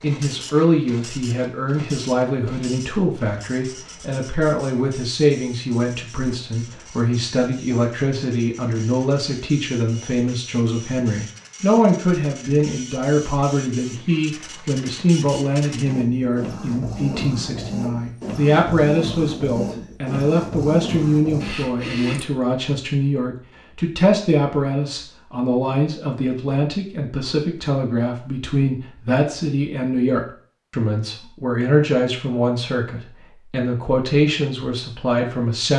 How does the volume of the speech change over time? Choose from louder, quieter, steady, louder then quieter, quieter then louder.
steady.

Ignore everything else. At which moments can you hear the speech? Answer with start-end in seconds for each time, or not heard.
0.0-35.7.